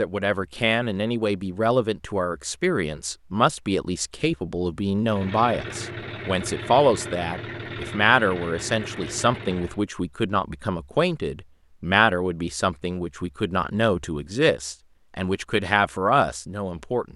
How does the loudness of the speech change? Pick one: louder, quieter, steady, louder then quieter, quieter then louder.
steady.